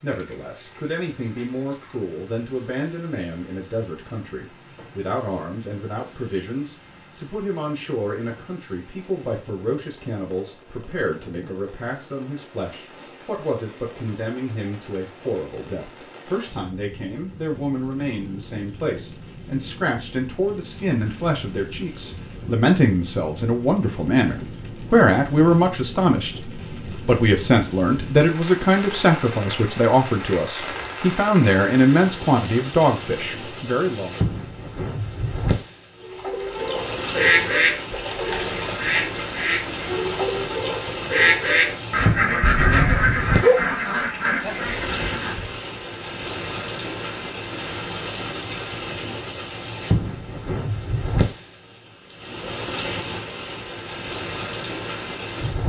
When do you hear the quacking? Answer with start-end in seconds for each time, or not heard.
36.0-45.5.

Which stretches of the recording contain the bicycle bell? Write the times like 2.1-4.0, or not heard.
42.4-43.1.